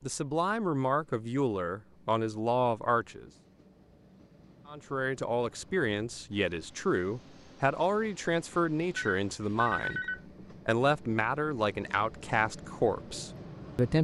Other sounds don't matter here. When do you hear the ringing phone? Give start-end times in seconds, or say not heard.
8.9-10.2.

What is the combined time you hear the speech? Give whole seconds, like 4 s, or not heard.
12 s.